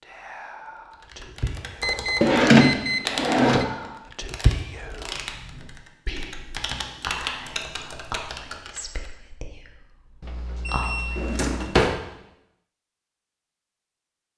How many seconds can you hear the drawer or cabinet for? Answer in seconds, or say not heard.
2 s.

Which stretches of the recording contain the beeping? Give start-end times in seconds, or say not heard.
1.8-3.6, 10.2-11.5.